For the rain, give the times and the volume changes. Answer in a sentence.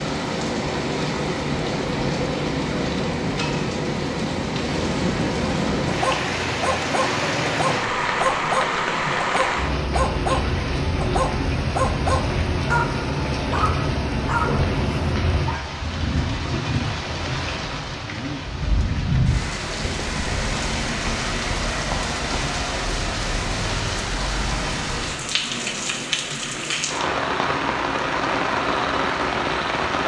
You can hear the rain from 0.0 to 30.0 s, at a steady volume.